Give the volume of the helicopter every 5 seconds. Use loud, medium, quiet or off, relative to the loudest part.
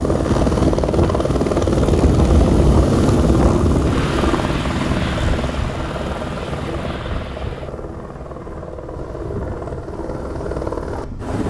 loud, medium, medium.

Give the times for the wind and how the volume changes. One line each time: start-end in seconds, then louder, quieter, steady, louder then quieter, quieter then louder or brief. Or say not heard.
0.0-11.4 quieter.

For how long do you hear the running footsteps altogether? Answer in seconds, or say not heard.
not heard.